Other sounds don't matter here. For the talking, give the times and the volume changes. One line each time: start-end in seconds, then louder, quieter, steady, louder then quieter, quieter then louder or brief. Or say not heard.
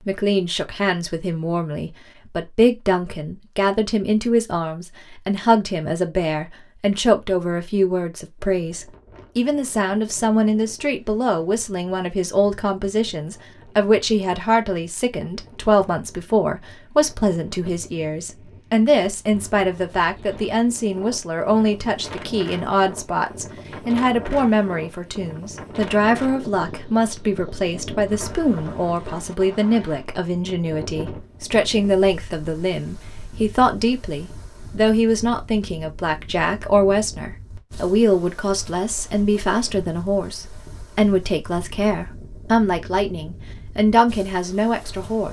0.1-45.2 steady.